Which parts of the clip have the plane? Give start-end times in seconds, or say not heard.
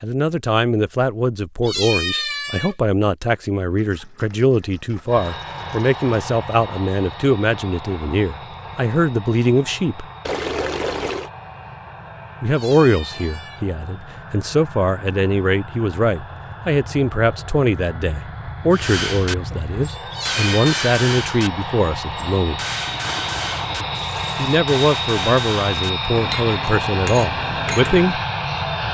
5.0-28.9.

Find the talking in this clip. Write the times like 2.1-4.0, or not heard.
0.0-10.1, 12.4-22.6, 24.4-28.2.